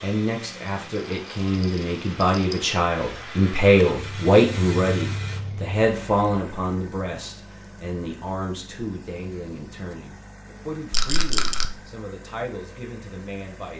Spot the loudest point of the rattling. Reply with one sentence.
The loudest moment of the rattling is at 11 seconds.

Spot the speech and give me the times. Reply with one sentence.
The speech can be heard from 0.0 to 13.7 s.